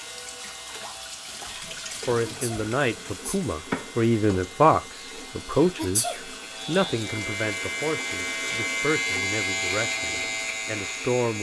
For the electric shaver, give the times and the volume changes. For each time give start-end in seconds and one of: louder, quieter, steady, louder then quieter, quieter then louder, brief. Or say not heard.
0.0-11.3 louder.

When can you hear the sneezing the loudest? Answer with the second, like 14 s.
6 s.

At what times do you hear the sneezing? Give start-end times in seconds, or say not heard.
2.2-3.4, 5.8-6.2.